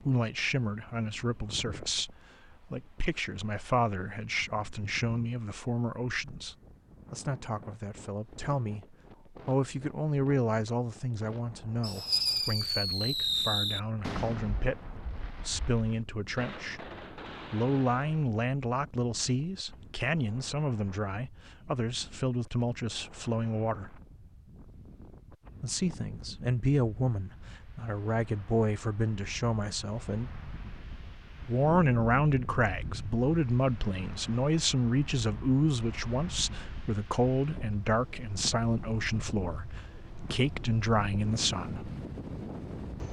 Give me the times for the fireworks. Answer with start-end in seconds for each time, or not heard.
11.8-18.2.